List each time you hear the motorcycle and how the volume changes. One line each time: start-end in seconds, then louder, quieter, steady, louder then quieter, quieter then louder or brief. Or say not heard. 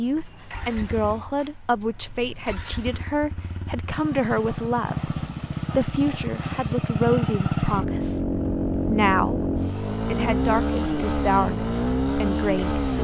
0.0-12.9 louder.